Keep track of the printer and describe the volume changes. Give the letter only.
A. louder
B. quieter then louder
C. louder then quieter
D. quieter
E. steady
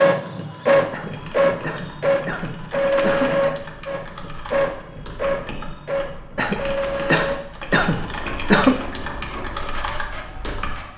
D.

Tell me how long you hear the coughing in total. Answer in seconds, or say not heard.
5 s.